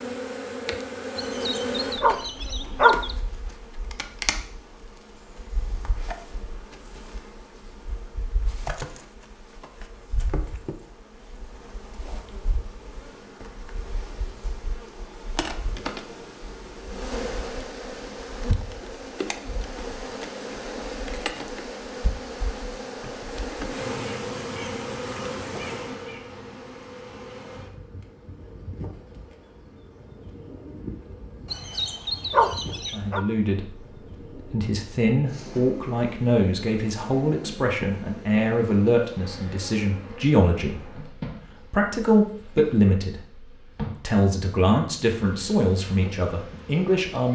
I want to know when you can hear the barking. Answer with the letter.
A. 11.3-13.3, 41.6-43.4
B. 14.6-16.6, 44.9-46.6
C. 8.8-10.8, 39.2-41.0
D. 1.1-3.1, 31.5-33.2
D.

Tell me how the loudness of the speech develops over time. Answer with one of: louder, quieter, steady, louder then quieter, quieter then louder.
steady.